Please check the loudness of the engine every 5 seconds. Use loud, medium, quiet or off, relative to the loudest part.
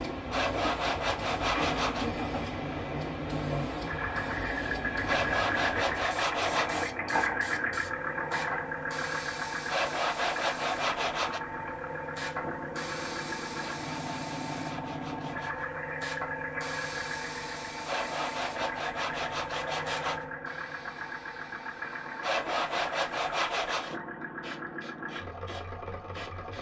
loud, loud, medium, medium, medium, medium.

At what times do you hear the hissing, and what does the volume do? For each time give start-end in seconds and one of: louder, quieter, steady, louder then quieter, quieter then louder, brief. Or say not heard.
0.0-26.5 quieter.